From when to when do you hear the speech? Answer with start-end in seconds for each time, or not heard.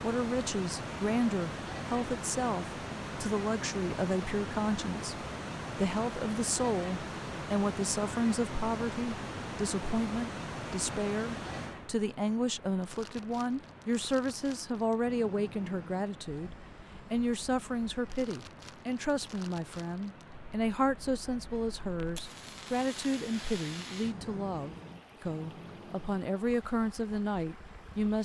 0.0-28.2.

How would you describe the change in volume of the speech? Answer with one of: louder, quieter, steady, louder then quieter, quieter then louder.
steady.